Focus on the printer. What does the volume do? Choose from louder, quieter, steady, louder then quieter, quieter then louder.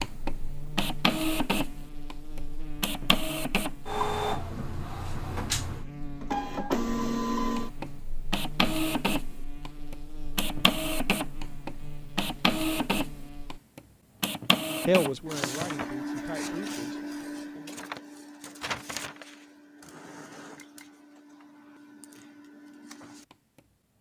quieter.